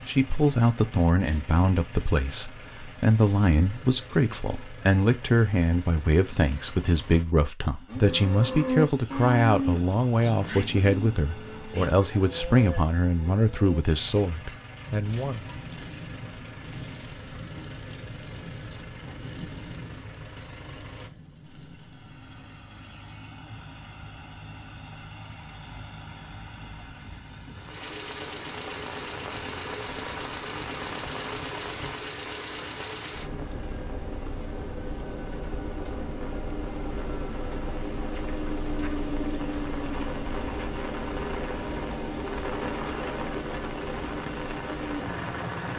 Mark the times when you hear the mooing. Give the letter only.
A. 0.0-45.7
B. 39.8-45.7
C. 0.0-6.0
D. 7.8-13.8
D.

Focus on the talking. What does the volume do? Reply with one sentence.
The volume of the talking stays about the same.